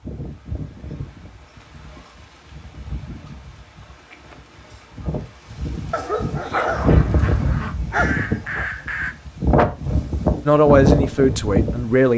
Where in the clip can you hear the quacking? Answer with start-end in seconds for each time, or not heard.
6.4-9.2.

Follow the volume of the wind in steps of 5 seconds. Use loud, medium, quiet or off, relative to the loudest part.
quiet, loud, loud.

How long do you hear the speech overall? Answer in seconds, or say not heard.
2 s.